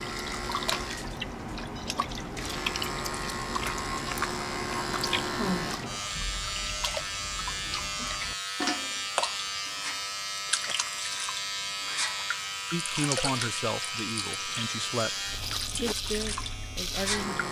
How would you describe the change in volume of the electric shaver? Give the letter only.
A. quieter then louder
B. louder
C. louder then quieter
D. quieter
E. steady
E.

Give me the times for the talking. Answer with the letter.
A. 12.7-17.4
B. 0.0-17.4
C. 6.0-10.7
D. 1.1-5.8
A.